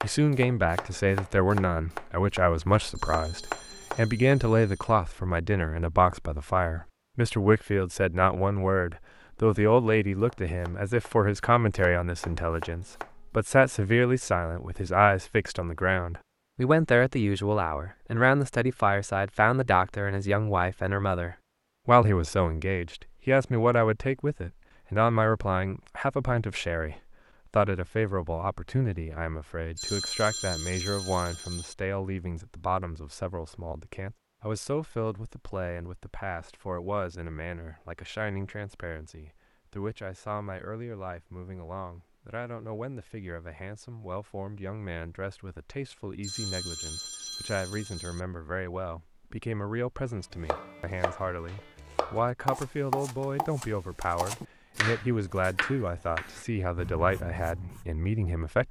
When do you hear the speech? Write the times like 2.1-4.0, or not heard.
0.0-58.6.